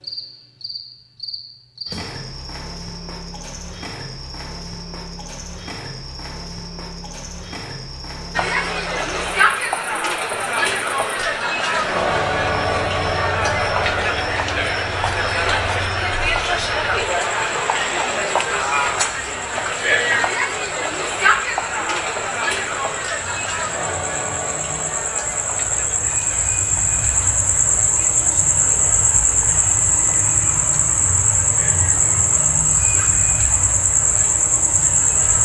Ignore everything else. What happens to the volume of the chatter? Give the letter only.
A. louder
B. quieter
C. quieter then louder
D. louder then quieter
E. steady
B.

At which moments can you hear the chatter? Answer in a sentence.
You can hear the chatter from 8.3 to 35.4 s.